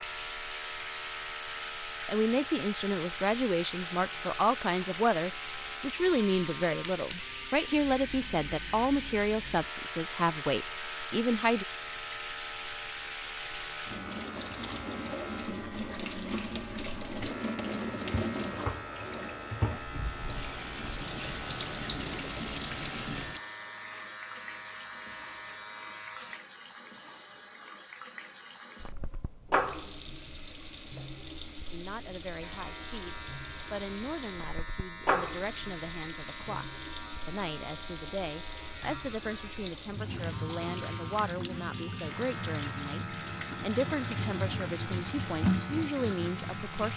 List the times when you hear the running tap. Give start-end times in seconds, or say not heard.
0.0-46.9.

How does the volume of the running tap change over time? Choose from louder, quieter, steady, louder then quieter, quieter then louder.
steady.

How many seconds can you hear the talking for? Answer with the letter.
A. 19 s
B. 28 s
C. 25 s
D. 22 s
C.